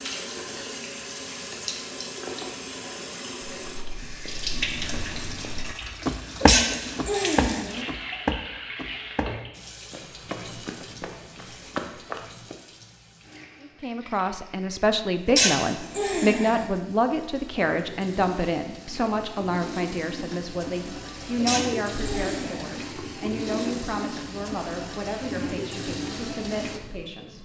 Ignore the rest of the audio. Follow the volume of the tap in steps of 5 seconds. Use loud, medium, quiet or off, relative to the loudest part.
loud, loud, quiet, medium, loud, loud.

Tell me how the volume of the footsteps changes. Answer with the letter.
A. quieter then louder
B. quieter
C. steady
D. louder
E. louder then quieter
E.